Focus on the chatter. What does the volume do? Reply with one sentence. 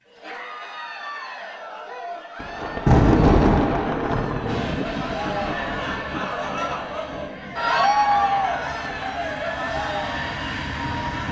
The loudness of the chatter goes up, then down.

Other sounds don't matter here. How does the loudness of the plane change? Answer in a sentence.
The loudness of the plane goes down, then up.